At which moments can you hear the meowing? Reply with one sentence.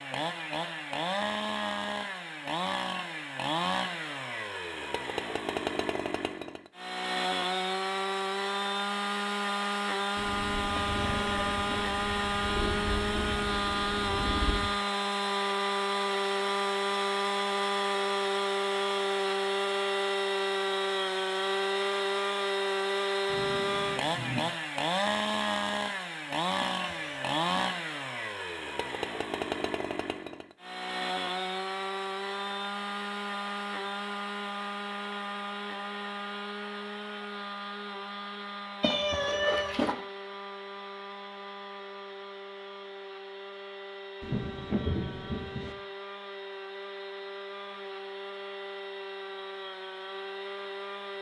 You can hear the meowing from 10.8 to 11.8 s, from 26.6 to 27.7 s and from 38.8 to 40.0 s.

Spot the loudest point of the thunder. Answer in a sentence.
The loudest moment of the thunder is at 45 seconds.